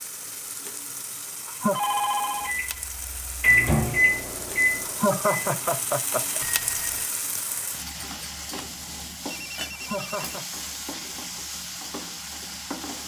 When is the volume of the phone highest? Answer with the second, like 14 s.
2 s.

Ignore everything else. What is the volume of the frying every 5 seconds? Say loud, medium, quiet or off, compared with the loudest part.
medium, loud, loud.